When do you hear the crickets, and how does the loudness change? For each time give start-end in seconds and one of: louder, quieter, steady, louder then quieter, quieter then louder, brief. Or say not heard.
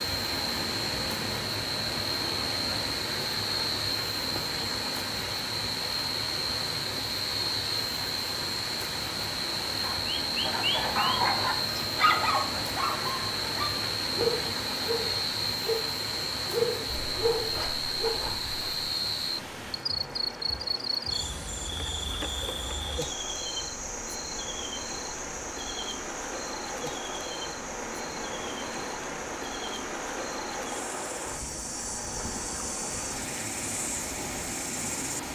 0.0-35.3 quieter.